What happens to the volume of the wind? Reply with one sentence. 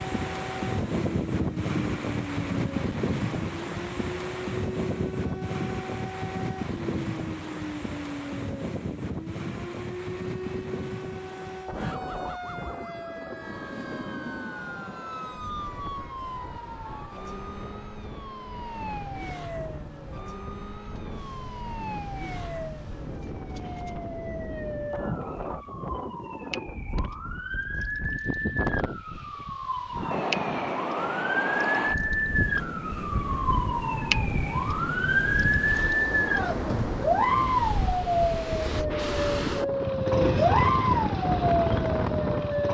The loudness of the wind goes down, then up.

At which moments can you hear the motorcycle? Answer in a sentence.
You can hear the motorcycle from 39.6 to 42.7 s.